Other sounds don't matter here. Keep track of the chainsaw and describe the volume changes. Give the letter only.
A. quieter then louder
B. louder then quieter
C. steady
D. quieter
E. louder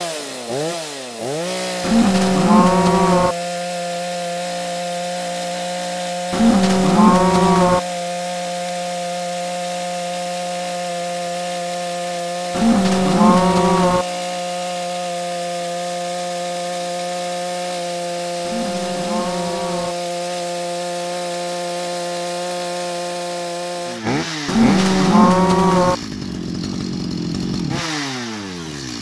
C.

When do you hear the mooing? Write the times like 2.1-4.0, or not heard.
1.8-3.4, 6.3-7.8, 12.5-14.1, 18.4-19.9, 24.4-25.9.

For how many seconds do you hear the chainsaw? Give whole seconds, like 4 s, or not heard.
29 s.